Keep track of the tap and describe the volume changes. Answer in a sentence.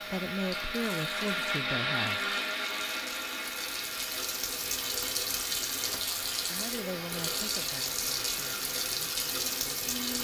The volume of the tap goes up.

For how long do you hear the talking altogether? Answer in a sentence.
The talking can be heard for 6 seconds in total.